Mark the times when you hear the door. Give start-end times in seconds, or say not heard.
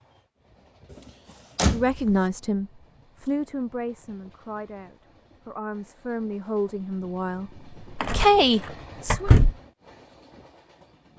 1.6-2.1, 8.0-8.4, 9.1-9.6.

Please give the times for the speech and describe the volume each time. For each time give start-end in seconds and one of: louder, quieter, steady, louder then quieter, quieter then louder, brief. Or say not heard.
1.6-9.3 quieter then louder.